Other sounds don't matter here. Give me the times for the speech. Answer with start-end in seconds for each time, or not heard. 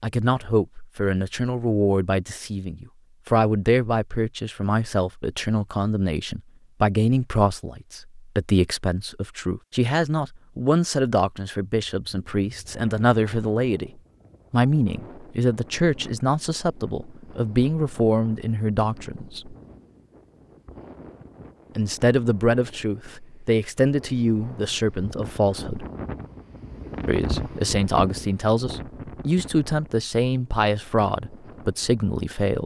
0.0-13.9, 14.5-19.6, 21.8-25.9, 27.1-32.6.